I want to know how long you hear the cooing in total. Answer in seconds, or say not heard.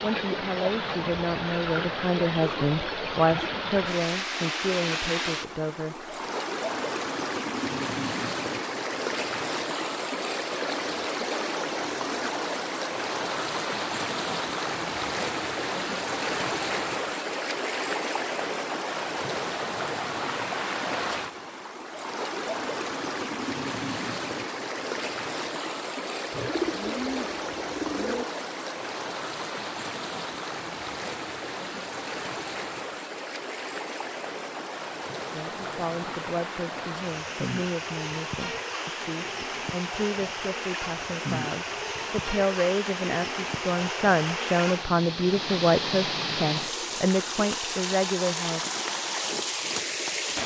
2 s.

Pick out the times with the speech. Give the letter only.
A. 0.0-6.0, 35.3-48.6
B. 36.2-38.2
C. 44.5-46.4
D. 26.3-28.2
A.